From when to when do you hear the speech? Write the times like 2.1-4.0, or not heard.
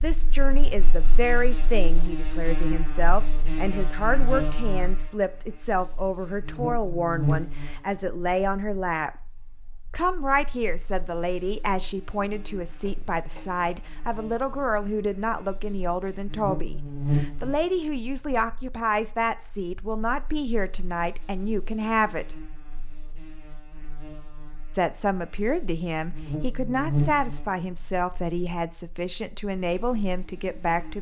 0.0-9.1, 9.9-22.4, 24.7-30.9.